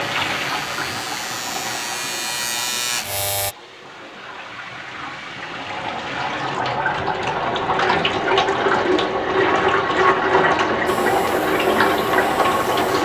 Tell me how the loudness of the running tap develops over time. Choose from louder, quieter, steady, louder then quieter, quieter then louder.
quieter then louder.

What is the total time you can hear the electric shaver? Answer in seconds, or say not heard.
6 s.